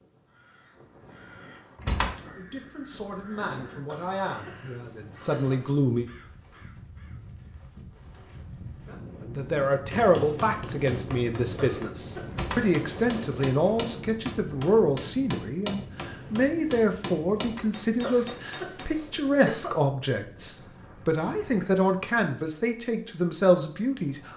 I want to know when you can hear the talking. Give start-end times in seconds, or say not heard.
2.4-6.0, 9.2-24.3.